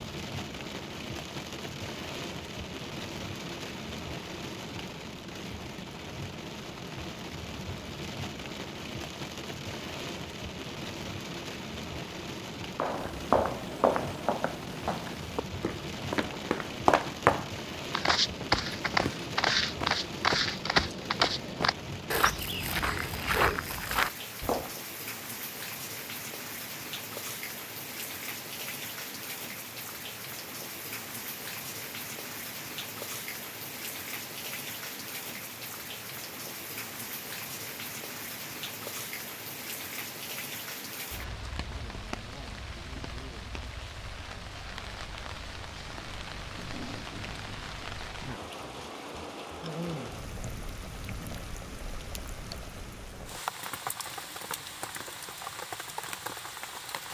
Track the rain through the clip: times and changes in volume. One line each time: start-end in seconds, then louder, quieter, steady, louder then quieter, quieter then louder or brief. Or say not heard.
0.0-57.0 steady.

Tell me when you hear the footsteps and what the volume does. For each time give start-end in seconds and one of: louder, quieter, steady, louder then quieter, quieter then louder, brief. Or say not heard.
12.8-24.7 steady.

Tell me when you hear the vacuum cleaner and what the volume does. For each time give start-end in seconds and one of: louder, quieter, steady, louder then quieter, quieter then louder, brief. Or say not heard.
not heard.